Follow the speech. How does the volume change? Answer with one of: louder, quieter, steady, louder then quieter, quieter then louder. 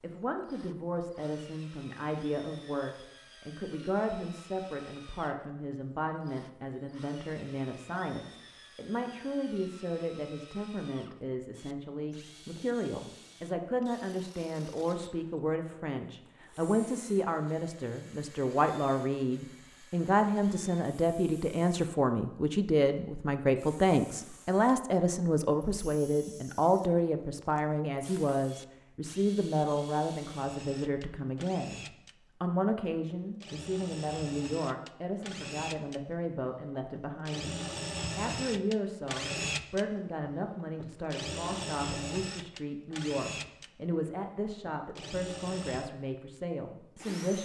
louder then quieter.